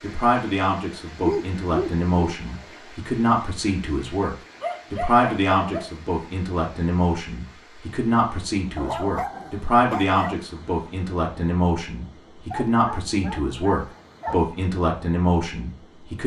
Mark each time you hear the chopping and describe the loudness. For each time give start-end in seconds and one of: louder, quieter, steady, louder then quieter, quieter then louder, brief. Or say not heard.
not heard.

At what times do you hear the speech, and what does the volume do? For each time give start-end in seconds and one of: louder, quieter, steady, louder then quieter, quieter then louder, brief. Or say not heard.
0.0-16.2 steady.